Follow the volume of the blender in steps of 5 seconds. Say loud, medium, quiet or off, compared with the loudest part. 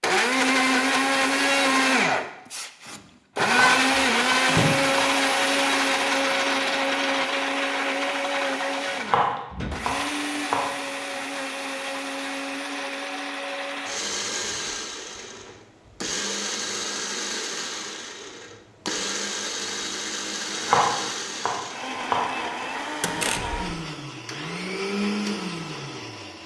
loud, loud, medium, medium, medium, medium.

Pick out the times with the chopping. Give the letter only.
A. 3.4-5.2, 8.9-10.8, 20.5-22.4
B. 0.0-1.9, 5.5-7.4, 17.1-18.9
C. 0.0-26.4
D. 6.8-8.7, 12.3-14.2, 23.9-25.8
A.